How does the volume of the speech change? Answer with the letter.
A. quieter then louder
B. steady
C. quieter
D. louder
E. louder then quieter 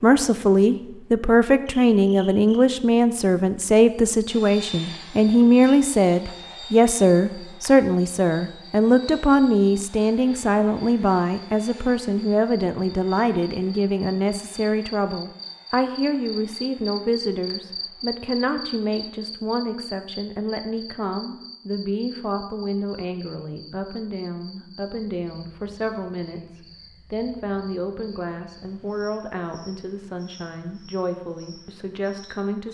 C.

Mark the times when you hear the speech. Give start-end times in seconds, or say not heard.
0.0-32.6.